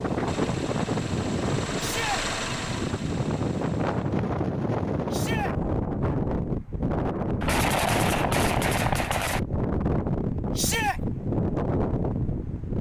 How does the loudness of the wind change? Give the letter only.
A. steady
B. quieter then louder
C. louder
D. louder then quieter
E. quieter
A.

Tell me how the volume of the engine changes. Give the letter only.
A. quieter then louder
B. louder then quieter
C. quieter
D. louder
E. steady
B.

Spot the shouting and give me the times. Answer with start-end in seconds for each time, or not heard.
1.8-2.2, 5.1-5.5, 10.6-11.0.